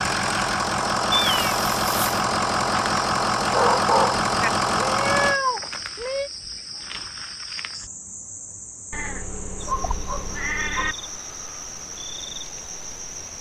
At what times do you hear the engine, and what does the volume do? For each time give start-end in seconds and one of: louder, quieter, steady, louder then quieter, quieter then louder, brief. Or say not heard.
0.0-5.4 steady.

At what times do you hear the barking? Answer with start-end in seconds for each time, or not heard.
3.5-4.5, 9.7-11.1.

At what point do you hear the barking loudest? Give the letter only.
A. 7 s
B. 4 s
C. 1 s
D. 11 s
B.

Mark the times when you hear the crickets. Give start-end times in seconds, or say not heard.
0.0-13.3.